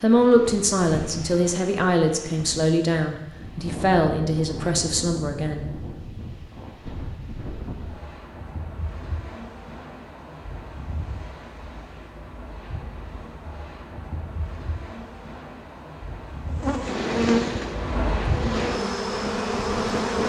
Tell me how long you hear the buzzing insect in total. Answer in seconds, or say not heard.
4 s.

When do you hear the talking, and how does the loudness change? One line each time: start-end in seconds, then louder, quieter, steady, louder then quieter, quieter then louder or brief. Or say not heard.
0.0-5.7 steady.